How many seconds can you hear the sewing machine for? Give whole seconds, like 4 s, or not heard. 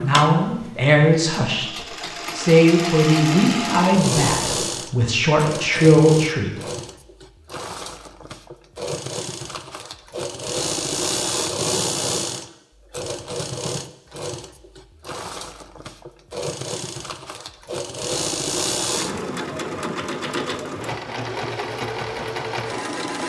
23 s.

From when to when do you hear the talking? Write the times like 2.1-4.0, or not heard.
0.0-6.5.